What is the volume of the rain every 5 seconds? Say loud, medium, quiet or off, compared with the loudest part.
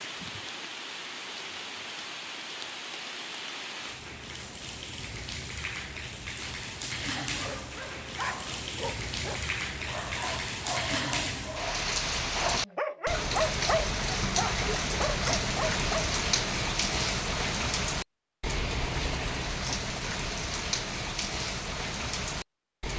medium, medium, loud, loud, loud.